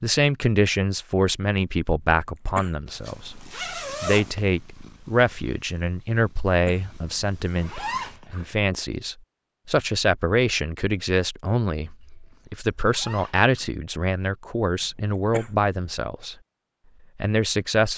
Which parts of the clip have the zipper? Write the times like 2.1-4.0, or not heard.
3.0-4.3, 6.8-8.5, 12.0-13.7.